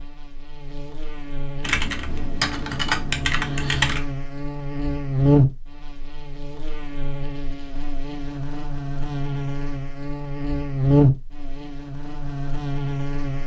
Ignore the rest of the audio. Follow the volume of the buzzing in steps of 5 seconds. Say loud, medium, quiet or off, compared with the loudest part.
medium, loud, loud.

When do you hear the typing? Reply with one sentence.
The typing can be heard from 1.6 to 4.0 s.